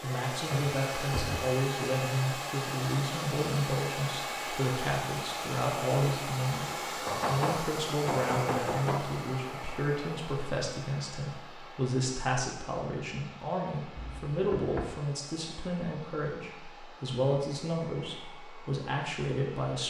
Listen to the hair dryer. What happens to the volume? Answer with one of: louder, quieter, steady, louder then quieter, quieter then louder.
quieter.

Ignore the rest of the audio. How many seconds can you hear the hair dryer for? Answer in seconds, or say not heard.
20 s.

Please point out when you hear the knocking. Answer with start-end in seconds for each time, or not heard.
0.5-1.4, 7.0-9.1, 13.9-14.9.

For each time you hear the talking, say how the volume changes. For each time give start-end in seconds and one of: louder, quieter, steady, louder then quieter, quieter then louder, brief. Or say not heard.
0.0-19.8 steady.